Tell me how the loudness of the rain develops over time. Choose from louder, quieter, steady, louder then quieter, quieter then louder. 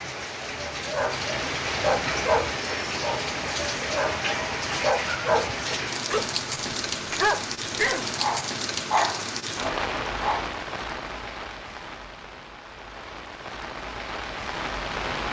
quieter.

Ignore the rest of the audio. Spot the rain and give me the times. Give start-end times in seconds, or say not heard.
0.0-15.2.